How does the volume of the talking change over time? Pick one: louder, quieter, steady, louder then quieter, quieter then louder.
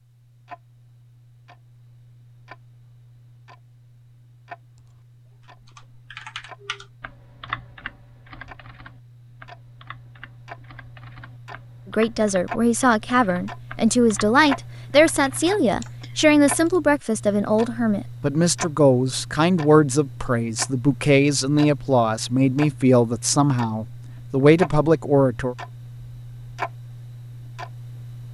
steady.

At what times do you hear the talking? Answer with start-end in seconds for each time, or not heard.
11.9-25.6.